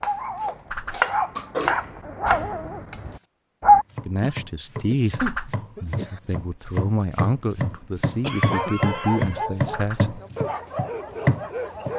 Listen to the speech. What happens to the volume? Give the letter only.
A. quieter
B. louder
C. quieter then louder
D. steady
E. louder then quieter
C.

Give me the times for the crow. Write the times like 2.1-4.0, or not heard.
not heard.